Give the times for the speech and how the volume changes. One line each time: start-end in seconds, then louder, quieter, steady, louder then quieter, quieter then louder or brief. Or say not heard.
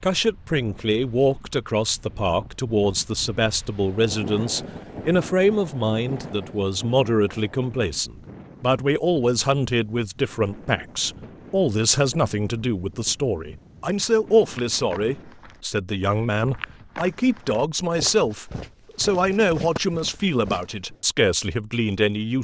0.0-22.4 steady.